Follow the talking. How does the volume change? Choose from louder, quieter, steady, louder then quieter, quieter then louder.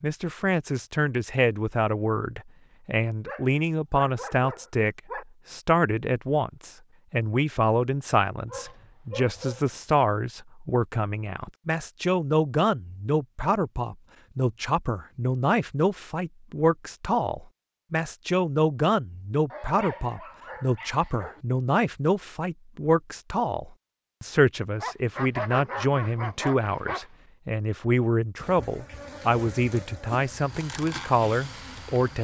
steady.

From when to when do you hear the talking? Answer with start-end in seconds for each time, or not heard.
0.0-32.2.